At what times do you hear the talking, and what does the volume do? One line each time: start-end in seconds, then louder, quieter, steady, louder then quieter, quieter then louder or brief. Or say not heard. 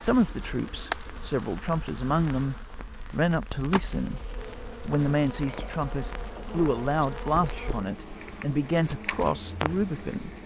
0.0-10.3 steady.